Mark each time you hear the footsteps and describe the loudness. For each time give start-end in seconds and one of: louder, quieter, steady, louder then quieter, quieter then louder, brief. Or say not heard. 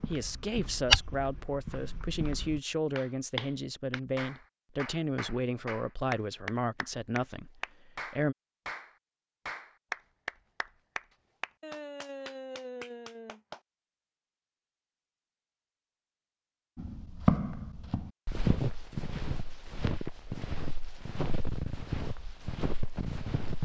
0.0-2.6 brief
16.8-23.6 quieter.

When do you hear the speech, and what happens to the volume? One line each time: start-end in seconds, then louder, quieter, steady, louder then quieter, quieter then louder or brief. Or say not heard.
0.1-8.3 steady.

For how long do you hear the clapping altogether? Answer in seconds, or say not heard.
11 s.